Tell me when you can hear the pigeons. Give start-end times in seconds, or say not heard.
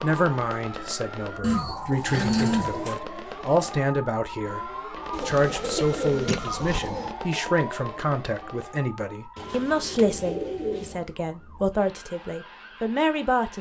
1.4-3.0, 5.1-7.2, 9.3-11.1.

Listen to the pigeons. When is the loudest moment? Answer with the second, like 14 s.
2 s.